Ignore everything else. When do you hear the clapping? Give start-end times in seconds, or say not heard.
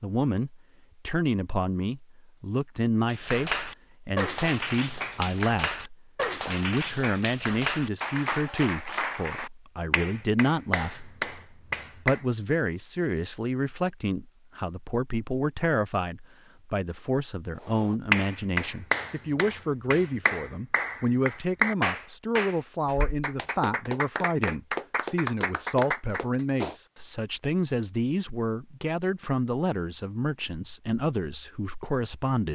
3.0-12.2, 17.6-26.8.